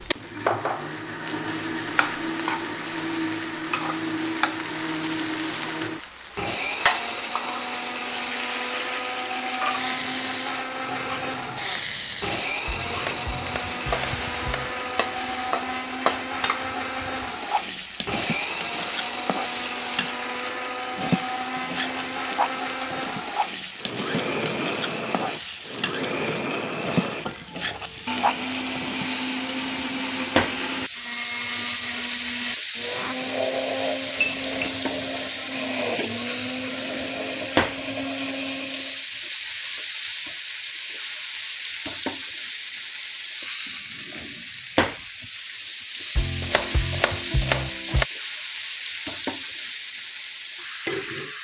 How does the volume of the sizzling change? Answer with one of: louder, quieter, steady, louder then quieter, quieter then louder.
steady.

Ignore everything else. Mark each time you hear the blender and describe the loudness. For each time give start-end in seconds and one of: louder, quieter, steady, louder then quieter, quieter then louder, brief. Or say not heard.
0.0-39.0 steady.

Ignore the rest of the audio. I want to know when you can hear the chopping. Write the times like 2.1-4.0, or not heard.
12.7-14.7, 46.1-48.0.